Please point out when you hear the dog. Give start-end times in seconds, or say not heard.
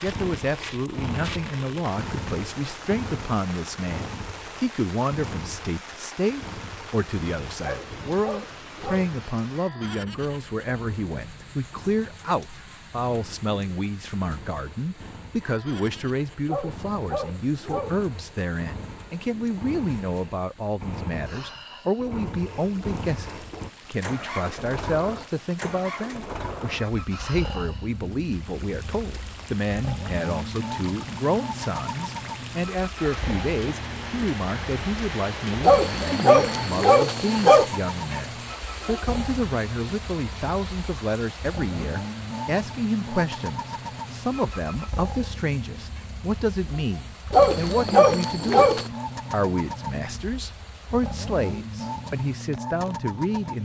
7.6-9.1, 16.4-18.1, 35.6-37.7, 47.3-48.9.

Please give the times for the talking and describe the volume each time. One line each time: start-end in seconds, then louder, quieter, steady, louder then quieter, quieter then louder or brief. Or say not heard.
0.0-53.6 steady.